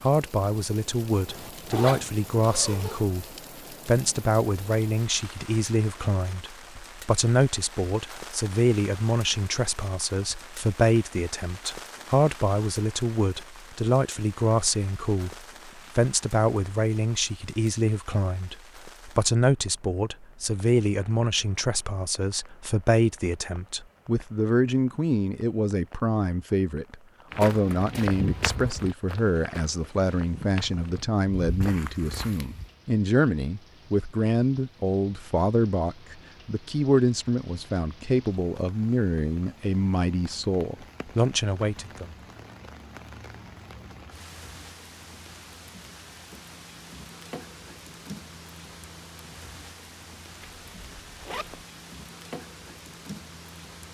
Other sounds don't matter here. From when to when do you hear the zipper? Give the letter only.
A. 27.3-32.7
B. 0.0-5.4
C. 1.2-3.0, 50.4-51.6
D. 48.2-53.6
C.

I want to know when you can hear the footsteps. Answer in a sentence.
The footsteps can be heard from 27.3 to 32.7 s.